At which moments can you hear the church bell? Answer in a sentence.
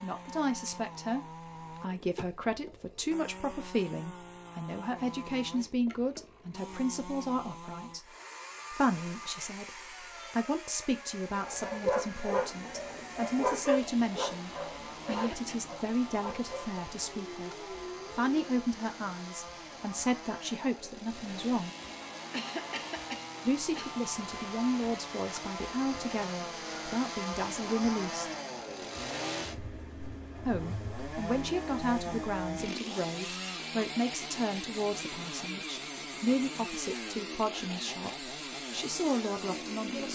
The church bell can't be heard in this clip.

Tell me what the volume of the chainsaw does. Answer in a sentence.
The volume of the chainsaw goes up.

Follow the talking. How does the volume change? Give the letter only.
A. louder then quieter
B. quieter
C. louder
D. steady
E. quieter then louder
D.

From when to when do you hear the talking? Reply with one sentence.
The talking can be heard from 0.0 to 8.1 s, from 8.7 to 21.7 s, from 23.4 to 28.4 s and from 30.4 to 40.1 s.